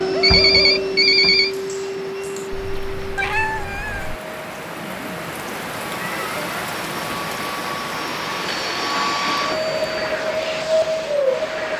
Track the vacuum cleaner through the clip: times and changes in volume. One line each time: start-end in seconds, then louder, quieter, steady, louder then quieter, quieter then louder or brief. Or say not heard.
0.0-11.7 quieter then louder.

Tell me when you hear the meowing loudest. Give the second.
3 s.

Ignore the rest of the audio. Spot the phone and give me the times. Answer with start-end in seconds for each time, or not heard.
0.2-1.6, 8.4-10.2.